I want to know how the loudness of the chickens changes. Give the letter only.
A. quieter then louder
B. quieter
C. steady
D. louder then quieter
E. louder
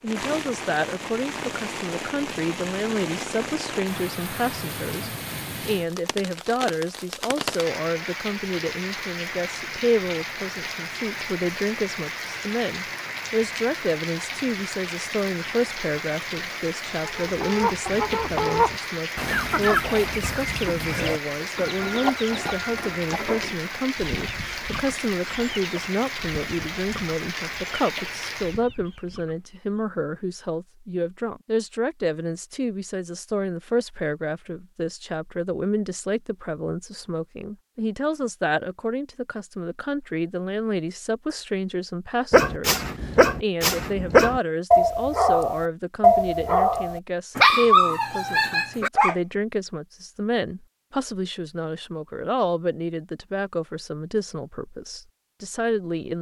B.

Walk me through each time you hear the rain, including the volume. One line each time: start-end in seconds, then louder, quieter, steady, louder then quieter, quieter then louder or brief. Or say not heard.
0.0-28.6 steady.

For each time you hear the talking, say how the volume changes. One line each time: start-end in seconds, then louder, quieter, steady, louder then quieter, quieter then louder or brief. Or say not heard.
0.0-56.1 steady.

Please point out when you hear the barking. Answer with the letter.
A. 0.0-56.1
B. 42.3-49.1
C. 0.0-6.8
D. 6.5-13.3
B.